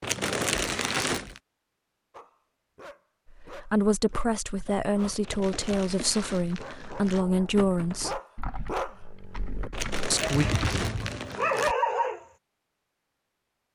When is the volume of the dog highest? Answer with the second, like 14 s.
12 s.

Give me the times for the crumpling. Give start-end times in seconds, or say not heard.
0.0-1.4, 5.2-7.2, 9.7-11.8.